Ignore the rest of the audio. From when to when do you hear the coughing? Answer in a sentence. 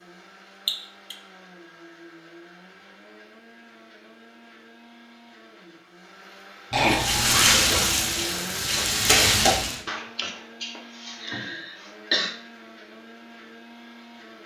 The coughing can be heard from 0.7 to 1.1 s, from 6.7 to 7.6 s and from 9.8 to 12.3 s.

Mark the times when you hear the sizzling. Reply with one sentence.
You can hear the sizzling from 6.9 to 9.8 s.